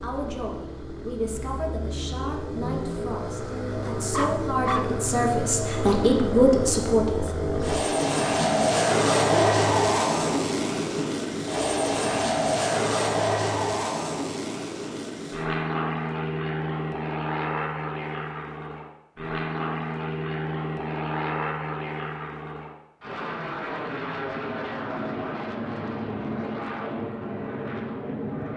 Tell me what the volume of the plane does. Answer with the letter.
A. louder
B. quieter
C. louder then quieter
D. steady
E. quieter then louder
C.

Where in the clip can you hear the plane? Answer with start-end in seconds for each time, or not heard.
0.0-28.5.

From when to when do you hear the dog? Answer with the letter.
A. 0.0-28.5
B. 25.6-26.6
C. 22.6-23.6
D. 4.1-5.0
D.